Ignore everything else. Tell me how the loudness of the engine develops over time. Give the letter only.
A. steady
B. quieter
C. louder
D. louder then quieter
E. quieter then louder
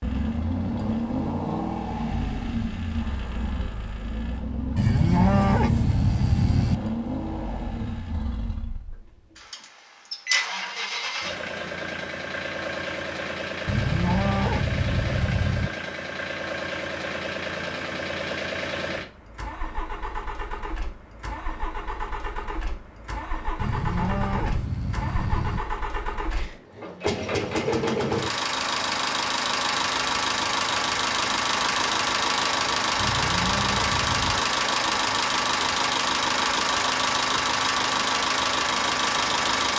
C.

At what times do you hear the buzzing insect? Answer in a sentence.
You can't hear the buzzing insect here.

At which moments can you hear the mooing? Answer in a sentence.
The mooing can be heard from 4.8 to 6.8 s, from 13.7 to 15.7 s, from 23.6 to 25.6 s and from 33.0 to 34.5 s.